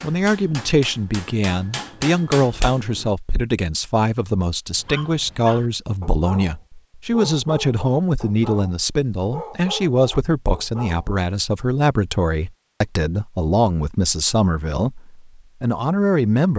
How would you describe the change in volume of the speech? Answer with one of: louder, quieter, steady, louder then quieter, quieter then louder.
steady.